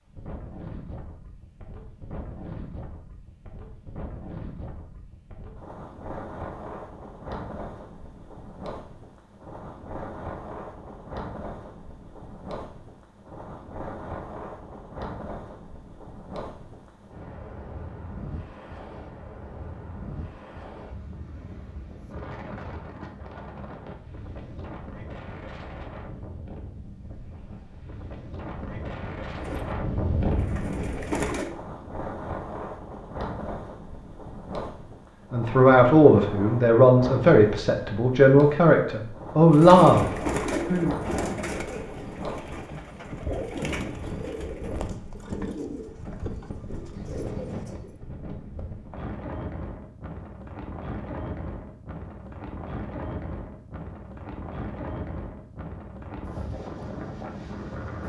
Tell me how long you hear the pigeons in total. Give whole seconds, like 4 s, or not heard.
11 s.